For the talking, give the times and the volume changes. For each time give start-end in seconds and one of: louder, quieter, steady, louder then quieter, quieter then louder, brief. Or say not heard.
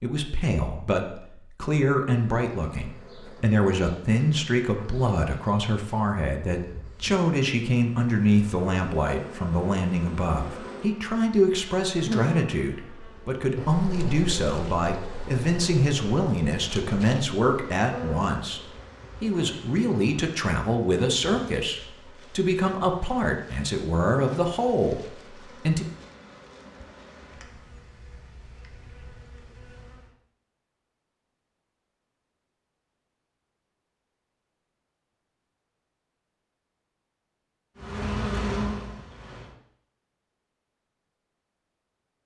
0.0-25.9 steady.